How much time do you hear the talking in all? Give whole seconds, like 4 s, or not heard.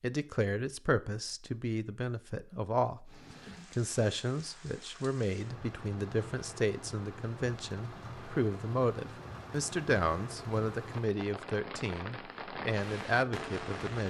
14 s.